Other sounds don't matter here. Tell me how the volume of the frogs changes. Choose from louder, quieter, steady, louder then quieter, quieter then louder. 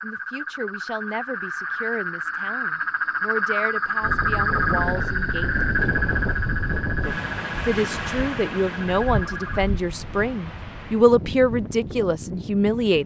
louder then quieter.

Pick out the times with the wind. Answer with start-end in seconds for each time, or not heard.
4.0-13.0.